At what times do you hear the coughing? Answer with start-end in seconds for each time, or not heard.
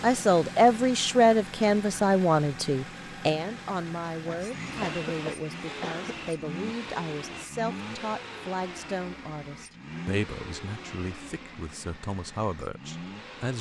4.2-6.2.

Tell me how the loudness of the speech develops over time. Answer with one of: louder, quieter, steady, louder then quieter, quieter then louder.
quieter.